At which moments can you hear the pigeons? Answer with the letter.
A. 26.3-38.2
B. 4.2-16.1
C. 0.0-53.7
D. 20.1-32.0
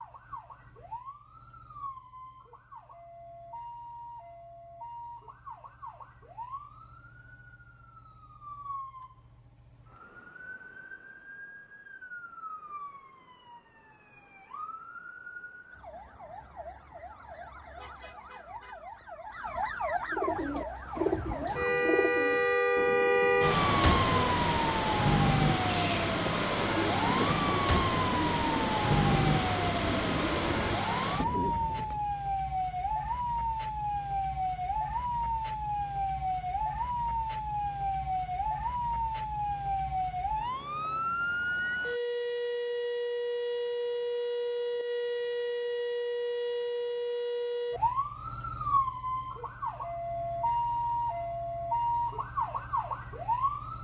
D.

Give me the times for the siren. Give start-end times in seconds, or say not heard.
0.0-53.7.